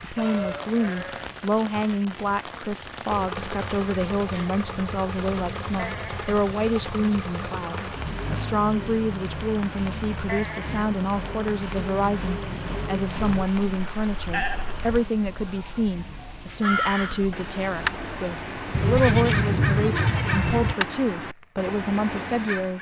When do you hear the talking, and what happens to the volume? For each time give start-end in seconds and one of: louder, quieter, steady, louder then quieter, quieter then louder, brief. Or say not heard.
0.0-22.7 steady.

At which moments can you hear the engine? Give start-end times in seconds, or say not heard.
3.0-13.4.